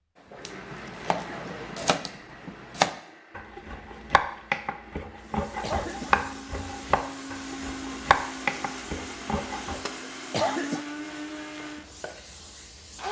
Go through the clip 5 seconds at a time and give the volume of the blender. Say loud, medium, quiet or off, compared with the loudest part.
medium, loud, loud.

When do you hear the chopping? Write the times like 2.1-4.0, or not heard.
0.4-9.8.